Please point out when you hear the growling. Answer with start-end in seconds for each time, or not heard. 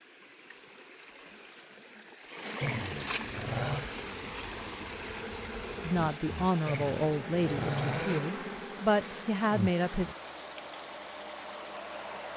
2.6-3.9, 6.7-8.2.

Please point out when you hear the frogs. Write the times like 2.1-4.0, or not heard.
not heard.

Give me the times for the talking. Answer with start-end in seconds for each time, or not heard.
5.8-10.1.